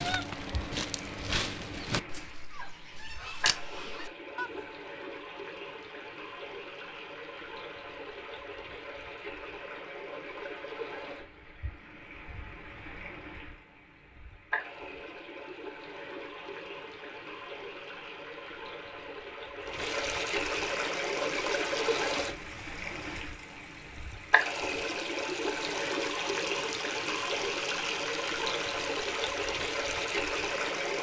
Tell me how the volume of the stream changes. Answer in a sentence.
The volume of the stream goes up.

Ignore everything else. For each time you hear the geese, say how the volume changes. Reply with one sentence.
The geese can be heard from 0.0 to 4.5 s, getting quieter then louder.